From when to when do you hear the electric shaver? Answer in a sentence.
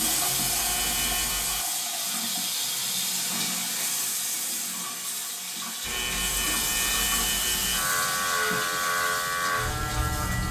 The electric shaver can be heard from 0.0 to 1.6 s and from 5.8 to 10.4 s.